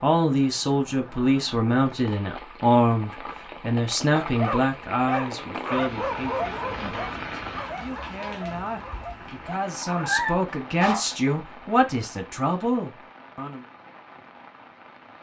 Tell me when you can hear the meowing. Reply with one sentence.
The meowing can be heard from 9.8 to 10.4 s.